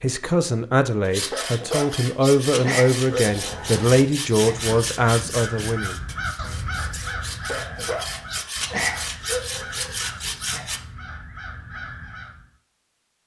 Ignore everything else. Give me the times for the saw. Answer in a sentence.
You can hear the saw from 1.1 to 10.8 s.